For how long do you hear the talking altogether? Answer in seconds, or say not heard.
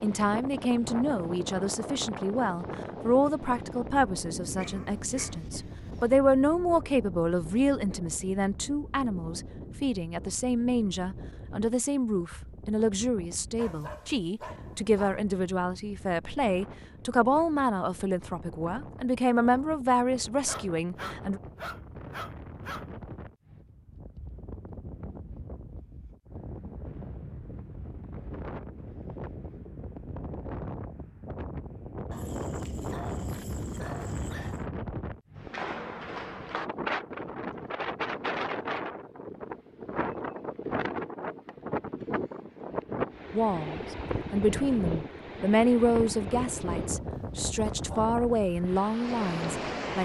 28 s.